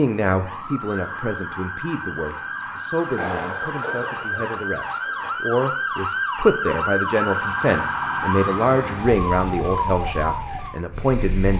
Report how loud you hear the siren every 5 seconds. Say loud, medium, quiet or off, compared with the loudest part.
medium, loud, medium.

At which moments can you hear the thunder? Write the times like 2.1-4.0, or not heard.
3.1-5.5.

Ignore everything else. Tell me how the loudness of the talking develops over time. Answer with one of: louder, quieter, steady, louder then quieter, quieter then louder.
louder.